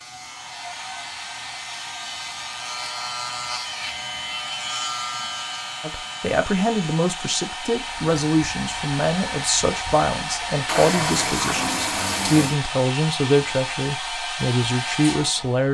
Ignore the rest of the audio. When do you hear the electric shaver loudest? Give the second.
5 s.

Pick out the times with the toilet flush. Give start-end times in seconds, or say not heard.
10.7-12.6.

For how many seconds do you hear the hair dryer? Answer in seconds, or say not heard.
16 s.